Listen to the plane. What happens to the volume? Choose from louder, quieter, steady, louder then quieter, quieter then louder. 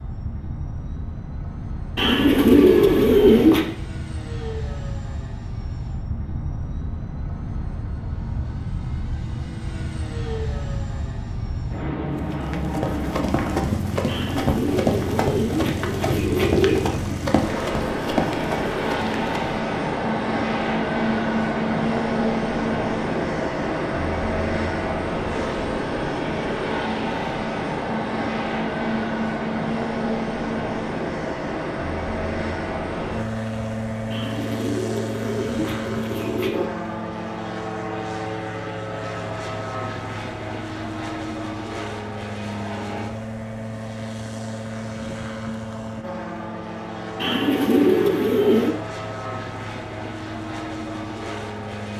louder then quieter.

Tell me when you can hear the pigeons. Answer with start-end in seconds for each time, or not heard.
1.9-3.7, 14.1-16.9, 34.1-36.6, 47.2-48.8.